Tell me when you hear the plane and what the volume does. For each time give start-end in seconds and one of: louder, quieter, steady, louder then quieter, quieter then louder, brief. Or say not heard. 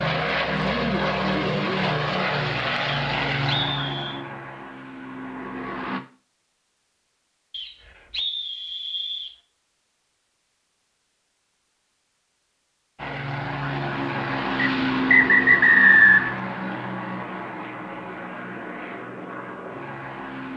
0.0-6.0 quieter
12.9-20.5 quieter.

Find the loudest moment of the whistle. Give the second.
16 s.